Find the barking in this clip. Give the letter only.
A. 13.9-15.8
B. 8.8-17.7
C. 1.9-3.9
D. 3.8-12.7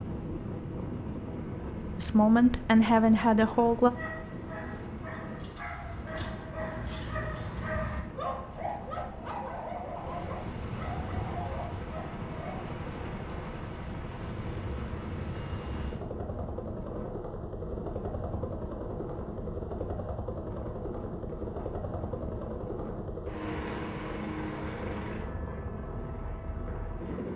D.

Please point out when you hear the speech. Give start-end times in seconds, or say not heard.
1.9-3.9.